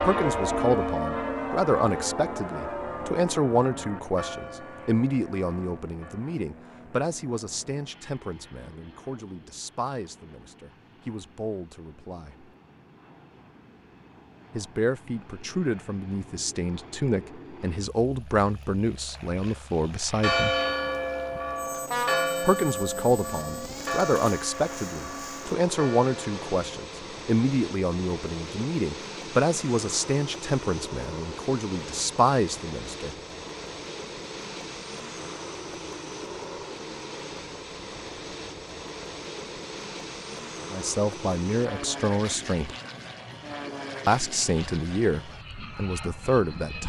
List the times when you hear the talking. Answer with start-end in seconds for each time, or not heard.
0.0-12.5, 14.5-20.6, 22.4-33.1, 40.7-42.8, 44.0-46.8.